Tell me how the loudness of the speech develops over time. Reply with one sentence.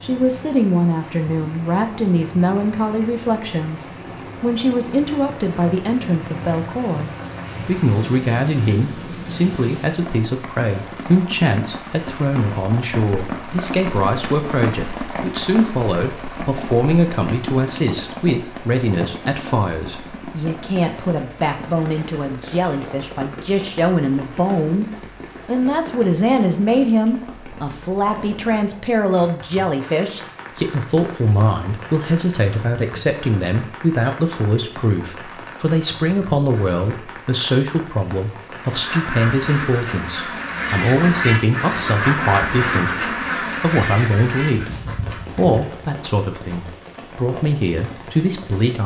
The loudness of the speech stays about the same.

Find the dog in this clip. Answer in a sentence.
You can't hear the dog here.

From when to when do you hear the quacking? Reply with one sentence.
You can hear the quacking from 38.5 to 45.9 s.